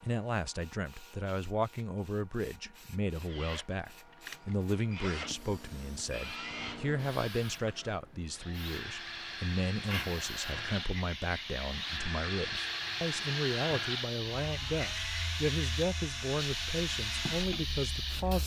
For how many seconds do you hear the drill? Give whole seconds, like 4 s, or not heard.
15 s.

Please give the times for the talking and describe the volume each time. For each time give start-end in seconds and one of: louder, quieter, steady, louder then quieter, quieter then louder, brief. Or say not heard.
0.0-18.4 steady.